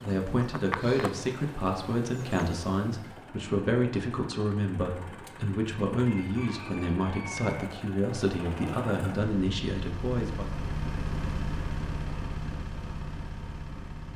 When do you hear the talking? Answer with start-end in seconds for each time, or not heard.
0.0-10.6.